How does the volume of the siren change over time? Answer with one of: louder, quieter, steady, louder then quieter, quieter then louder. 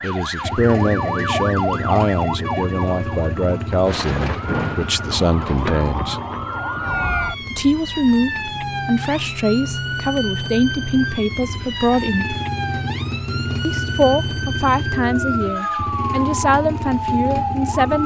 steady.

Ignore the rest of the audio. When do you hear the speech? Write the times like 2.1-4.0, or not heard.
0.0-6.2, 7.5-12.3, 13.6-18.0.